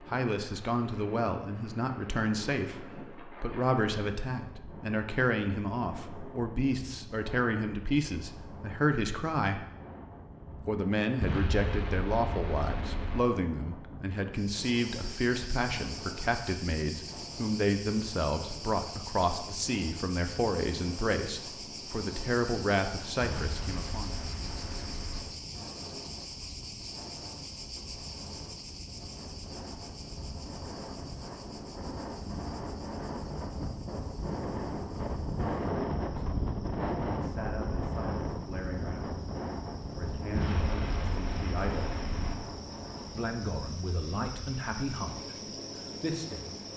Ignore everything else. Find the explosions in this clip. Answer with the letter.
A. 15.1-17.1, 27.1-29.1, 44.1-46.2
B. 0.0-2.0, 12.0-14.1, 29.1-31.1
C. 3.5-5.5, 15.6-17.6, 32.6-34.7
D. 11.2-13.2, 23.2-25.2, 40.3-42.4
D.